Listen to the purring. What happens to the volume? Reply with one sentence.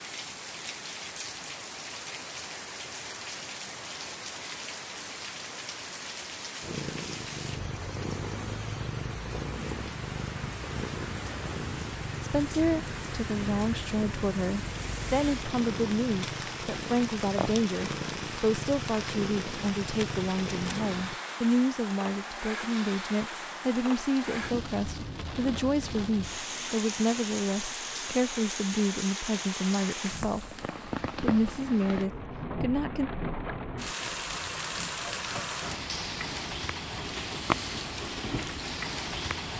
The volume of the purring stays about the same.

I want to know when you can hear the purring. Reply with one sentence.
You can hear the purring from 6.6 to 21.2 s.